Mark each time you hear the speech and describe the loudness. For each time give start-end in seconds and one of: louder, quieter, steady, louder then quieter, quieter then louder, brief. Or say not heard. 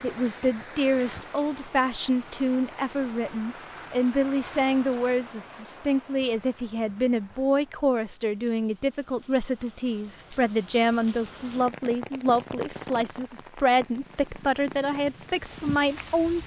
0.0-16.4 steady.